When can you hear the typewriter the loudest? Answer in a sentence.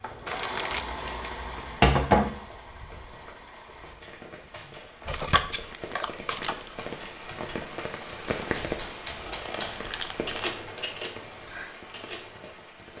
The volume of the typewriter peaks at 10 seconds.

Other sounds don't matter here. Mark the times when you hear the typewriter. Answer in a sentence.
You can hear the typewriter from 3.8 to 12.6 s.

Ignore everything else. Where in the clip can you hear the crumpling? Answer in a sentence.
The crumpling can be heard from 0.2 to 0.9 s, from 5.0 to 6.8 s and from 9.7 to 10.7 s.